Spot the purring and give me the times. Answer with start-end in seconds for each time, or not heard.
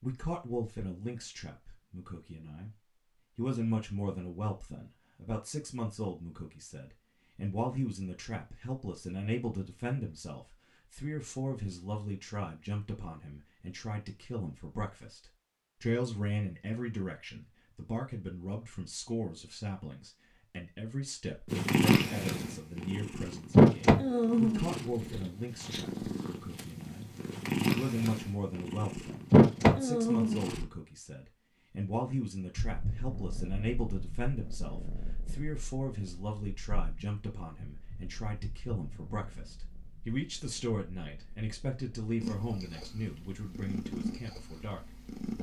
21.5-30.6, 32.5-45.3.